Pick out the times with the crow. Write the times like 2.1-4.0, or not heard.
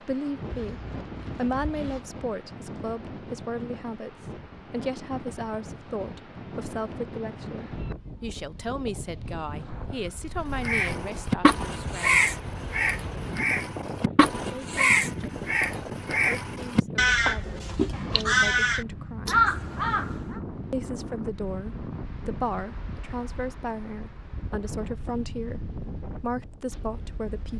10.6-20.4.